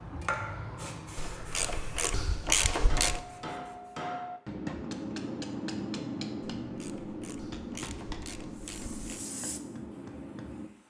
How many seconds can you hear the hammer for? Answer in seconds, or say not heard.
8 s.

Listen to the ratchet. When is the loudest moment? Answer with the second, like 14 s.
3 s.